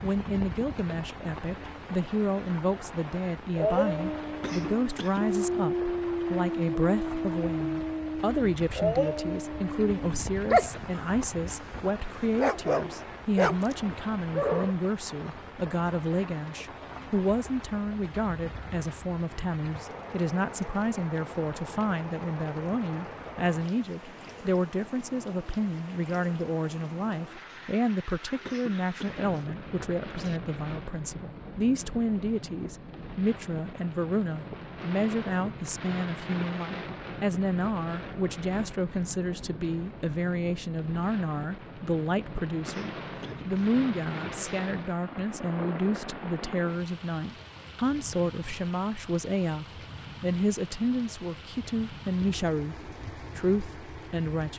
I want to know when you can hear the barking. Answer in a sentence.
The barking can be heard from 3.5 to 14.8 s.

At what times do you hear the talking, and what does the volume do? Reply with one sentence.
You can hear the talking from 0.0 to 54.5 s, at a steady volume.